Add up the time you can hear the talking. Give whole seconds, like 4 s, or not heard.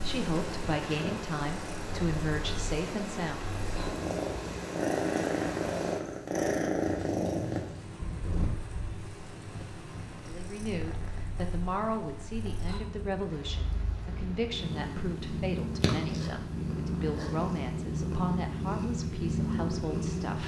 14 s.